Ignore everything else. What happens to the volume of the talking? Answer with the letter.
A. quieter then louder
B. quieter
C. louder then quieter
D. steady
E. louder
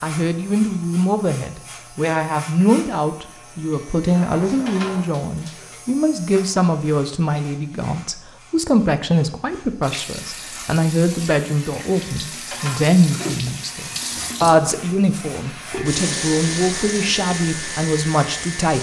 D.